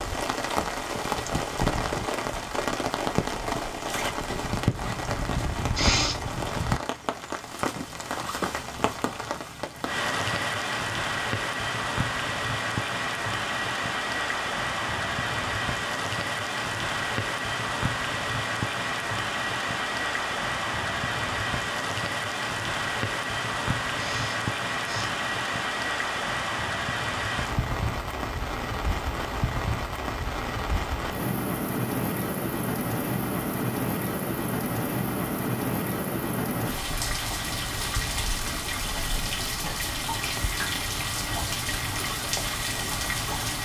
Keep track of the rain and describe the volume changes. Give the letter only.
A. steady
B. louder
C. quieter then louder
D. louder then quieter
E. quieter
A.